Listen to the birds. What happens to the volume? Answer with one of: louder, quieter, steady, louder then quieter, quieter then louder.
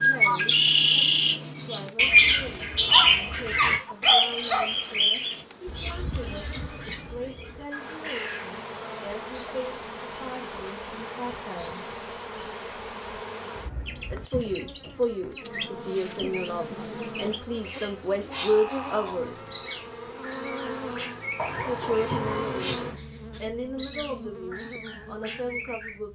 quieter.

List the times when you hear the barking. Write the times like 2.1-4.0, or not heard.
2.9-4.7, 21.4-22.9.